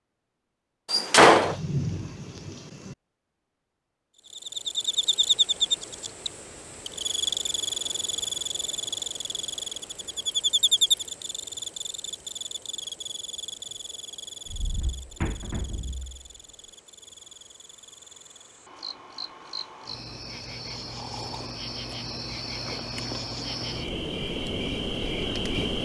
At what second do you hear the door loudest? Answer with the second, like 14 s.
1 s.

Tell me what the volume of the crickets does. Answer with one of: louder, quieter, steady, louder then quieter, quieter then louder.
quieter then louder.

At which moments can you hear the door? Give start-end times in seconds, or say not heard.
0.9-1.6, 14.4-16.3.